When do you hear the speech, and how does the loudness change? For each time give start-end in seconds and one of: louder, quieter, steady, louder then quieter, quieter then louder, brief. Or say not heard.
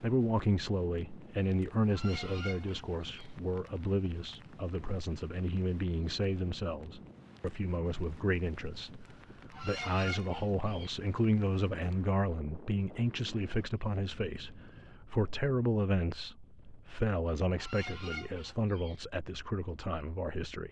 0.0-20.6 steady.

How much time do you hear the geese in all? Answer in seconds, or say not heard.
4 s.